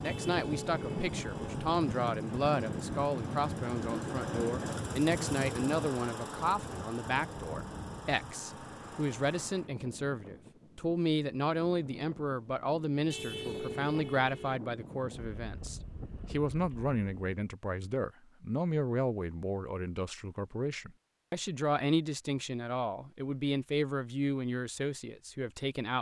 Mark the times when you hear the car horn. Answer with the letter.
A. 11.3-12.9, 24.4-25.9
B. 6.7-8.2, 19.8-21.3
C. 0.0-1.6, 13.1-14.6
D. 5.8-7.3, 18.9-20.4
C.